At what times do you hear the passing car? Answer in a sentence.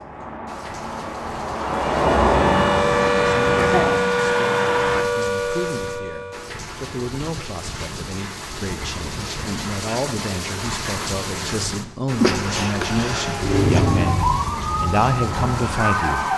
The passing car can be heard from 0.0 to 5.0 s and from 12.2 to 16.3 s.